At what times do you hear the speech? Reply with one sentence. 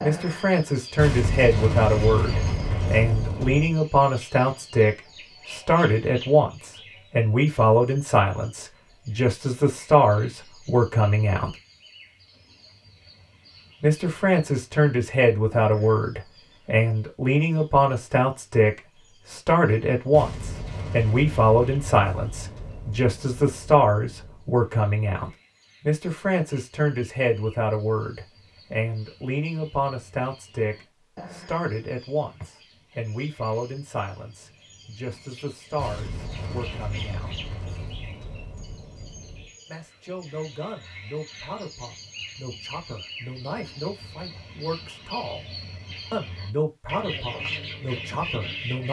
You can hear the speech from 0.0 to 11.6 s, from 13.8 to 37.4 s, from 39.6 to 45.5 s and from 46.1 to 48.8 s.